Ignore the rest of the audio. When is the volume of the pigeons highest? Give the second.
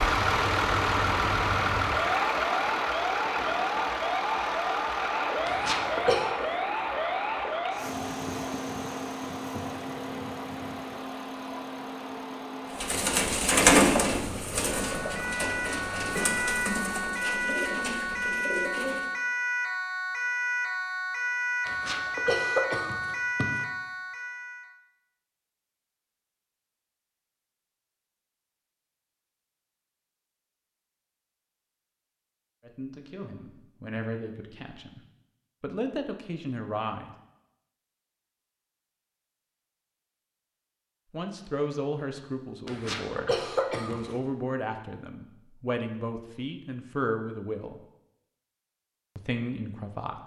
14 s.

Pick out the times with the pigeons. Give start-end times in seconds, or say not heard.
12.7-19.1.